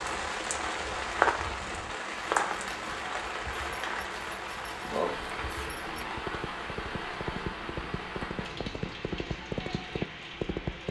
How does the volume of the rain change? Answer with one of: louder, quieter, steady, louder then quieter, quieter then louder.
quieter.